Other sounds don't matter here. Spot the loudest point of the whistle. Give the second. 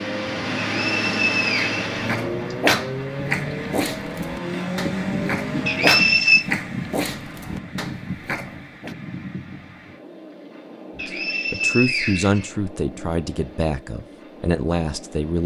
6 s.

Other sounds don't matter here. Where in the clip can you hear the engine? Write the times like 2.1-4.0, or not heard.
0.0-6.4.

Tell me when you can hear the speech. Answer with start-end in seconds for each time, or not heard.
10.9-15.4.